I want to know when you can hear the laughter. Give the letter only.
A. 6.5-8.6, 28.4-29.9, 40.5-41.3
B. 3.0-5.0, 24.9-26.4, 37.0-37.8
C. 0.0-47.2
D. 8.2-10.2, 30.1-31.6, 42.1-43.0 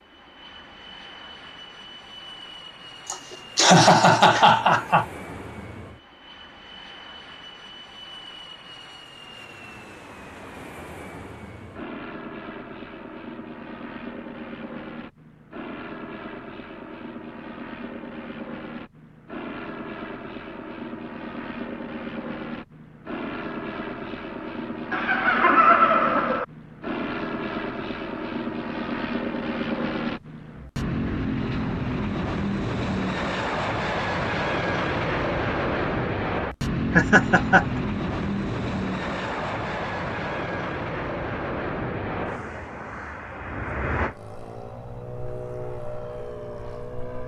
B.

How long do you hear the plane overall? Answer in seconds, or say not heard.
47 s.